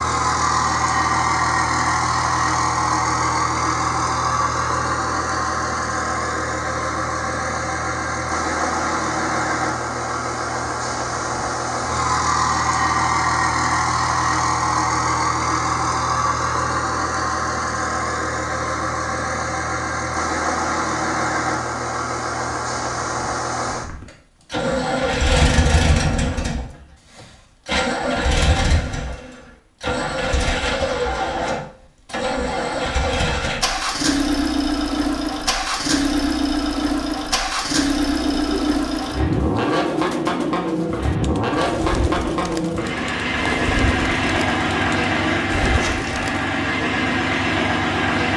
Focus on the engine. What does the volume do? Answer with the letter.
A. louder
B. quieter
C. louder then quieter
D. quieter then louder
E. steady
E.